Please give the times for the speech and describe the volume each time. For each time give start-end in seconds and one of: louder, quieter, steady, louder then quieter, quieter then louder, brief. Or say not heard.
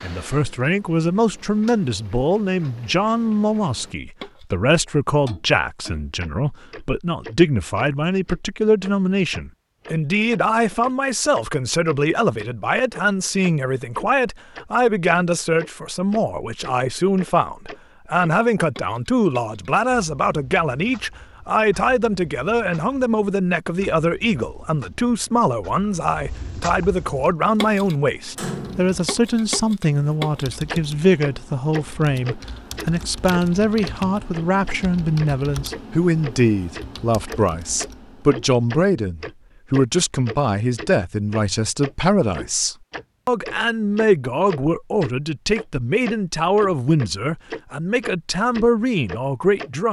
0.0-49.8 steady.